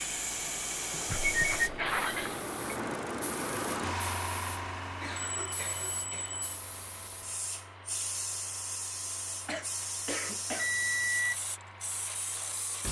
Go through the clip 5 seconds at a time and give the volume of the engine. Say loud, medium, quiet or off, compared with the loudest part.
loud, medium, quiet.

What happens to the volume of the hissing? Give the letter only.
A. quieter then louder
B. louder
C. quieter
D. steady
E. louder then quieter
A.